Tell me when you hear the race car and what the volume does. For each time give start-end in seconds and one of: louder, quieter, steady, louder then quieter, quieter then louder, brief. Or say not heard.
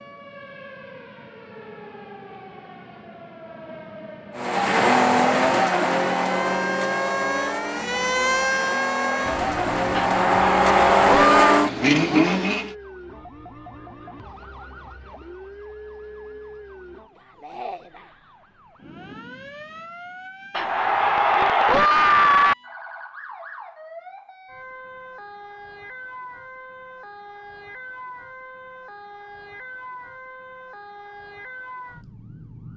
4.3-12.7 quieter then louder.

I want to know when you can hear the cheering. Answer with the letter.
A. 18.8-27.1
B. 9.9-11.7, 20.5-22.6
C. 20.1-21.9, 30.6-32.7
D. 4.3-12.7
B.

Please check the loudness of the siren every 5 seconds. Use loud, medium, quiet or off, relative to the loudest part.
quiet, loud, quiet, quiet, quiet, quiet, quiet.